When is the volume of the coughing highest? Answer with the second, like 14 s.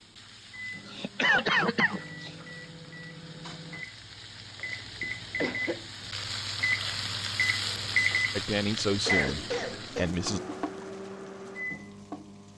1 s.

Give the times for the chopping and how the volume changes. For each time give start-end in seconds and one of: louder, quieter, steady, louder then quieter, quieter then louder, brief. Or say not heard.
not heard.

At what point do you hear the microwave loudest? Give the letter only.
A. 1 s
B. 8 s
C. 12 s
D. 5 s
B.